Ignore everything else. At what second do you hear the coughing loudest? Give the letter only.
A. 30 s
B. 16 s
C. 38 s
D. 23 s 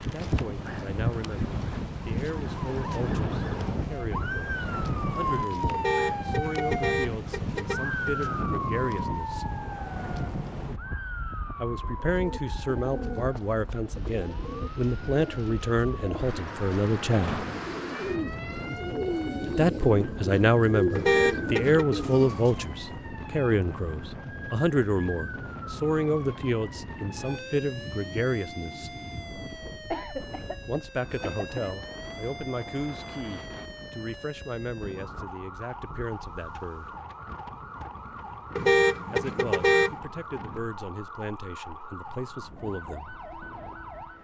A.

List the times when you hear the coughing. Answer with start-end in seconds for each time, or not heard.
29.9-31.8.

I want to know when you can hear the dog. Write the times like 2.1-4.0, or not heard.
not heard.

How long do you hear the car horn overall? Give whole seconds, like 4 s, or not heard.
5 s.